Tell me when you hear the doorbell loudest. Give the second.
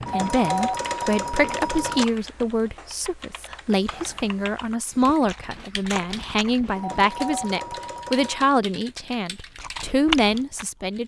1 s.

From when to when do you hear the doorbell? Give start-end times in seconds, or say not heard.
0.1-2.0, 6.8-8.6.